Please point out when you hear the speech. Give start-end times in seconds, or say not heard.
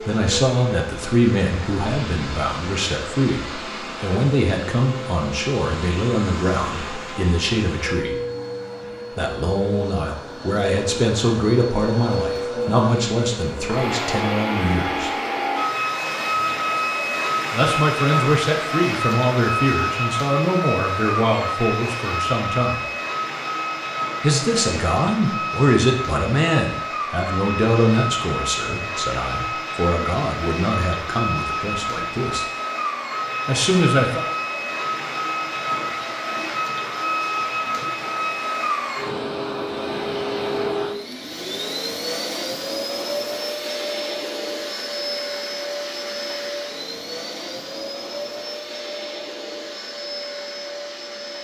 0.0-8.2, 9.2-15.1, 17.5-22.9, 24.2-32.5, 33.5-34.2.